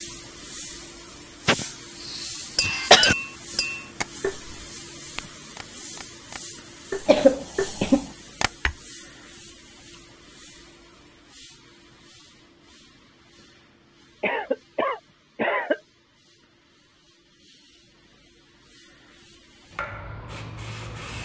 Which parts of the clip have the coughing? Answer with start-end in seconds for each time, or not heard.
1.4-3.1, 7.0-8.1, 14.2-15.8.